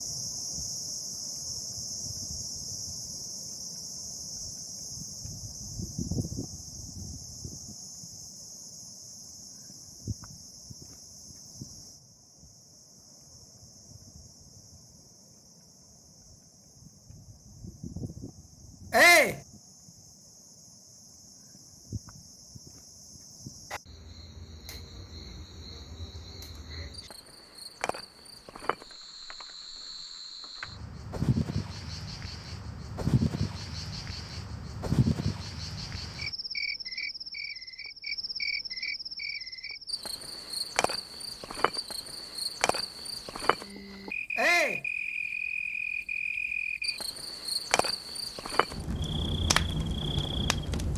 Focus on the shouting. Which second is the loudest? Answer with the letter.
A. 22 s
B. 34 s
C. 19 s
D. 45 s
C.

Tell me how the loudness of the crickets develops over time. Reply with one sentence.
The loudness of the crickets goes down, then up.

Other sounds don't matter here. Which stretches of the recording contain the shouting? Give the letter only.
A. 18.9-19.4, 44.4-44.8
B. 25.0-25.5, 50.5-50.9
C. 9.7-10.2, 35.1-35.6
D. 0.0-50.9
A.